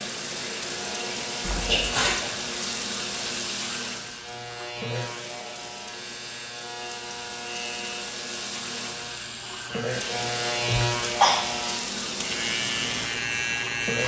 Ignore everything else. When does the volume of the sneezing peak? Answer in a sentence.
The loudest moment of the sneezing is at 11 seconds.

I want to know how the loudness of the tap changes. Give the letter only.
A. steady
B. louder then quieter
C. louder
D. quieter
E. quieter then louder
E.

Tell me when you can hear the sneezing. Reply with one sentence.
You can hear the sneezing from 1.6 to 2.3 s and from 10.7 to 11.3 s.